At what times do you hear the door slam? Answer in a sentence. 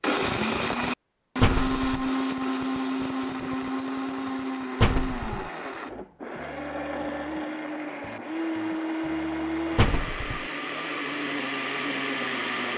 The door slam can be heard from 1.4 to 2.1 s, from 4.8 to 5.5 s and from 9.8 to 10.4 s.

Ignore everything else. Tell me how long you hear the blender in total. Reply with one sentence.
The blender can be heard for 13 seconds in total.